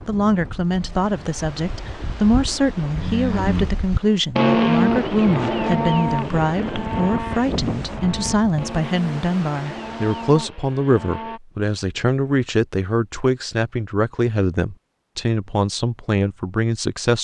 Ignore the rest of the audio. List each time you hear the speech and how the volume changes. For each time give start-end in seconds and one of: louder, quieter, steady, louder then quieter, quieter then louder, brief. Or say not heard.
0.1-17.1 steady.